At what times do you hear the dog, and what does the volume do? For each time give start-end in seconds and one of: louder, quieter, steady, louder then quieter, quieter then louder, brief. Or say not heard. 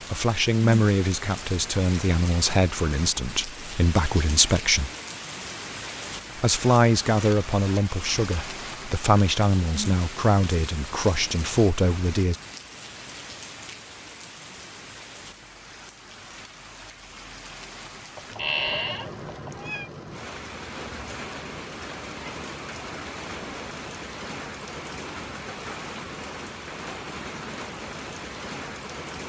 not heard.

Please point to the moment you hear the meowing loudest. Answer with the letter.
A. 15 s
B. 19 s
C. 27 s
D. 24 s
B.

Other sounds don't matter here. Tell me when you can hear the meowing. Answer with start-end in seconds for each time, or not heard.
18.1-19.9.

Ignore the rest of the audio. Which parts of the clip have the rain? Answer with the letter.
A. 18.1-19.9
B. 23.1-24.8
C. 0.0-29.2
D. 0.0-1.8
C.